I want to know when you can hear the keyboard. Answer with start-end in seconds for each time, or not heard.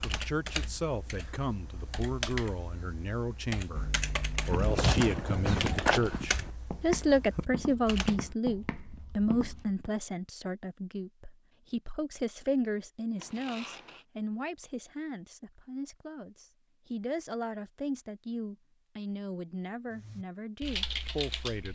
0.0-8.2, 19.9-21.7.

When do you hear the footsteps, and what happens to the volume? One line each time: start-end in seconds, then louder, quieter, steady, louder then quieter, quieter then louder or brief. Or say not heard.
4.5-9.9 quieter.